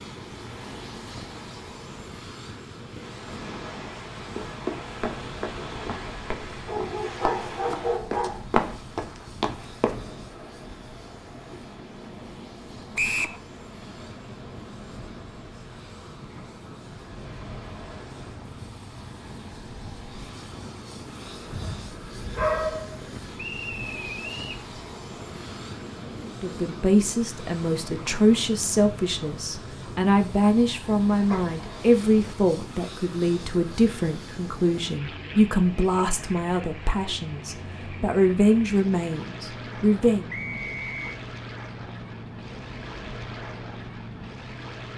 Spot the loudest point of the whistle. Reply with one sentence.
The loudest moment of the whistle is at 13 seconds.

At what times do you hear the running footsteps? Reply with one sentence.
You can hear the running footsteps from 4.2 to 10.1 s.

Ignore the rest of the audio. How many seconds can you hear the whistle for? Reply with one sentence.
The whistle can be heard for 3 seconds in total.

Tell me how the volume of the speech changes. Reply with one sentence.
The volume of the speech stays about the same.